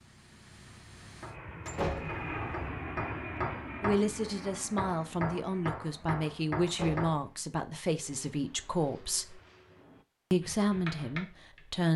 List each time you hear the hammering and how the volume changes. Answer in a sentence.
The hammering can be heard from 1.1 to 7.2 s, getting louder; and briefly from 10.4 to 11.9 s.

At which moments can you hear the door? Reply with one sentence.
The door can be heard from 1.6 to 2.6 s and from 6.7 to 7.2 s.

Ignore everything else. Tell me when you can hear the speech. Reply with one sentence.
You can hear the speech from 3.8 to 9.4 s and from 10.3 to 11.9 s.